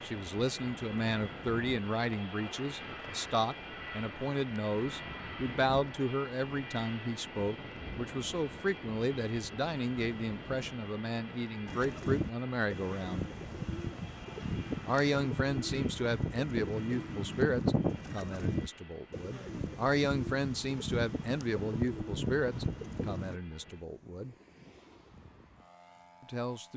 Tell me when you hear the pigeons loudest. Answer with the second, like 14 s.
18 s.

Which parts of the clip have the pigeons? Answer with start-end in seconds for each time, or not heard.
11.7-23.4.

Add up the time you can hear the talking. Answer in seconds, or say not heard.
23 s.